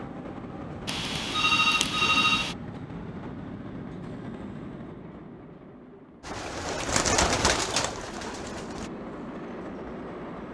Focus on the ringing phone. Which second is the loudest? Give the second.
2 s.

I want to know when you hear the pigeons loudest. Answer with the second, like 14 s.
7 s.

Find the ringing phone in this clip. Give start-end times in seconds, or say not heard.
0.8-2.5.